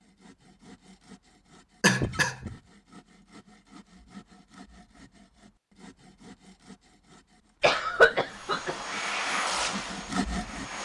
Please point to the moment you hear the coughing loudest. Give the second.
8 s.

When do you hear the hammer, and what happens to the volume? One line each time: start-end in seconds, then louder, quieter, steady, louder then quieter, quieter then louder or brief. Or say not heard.
not heard.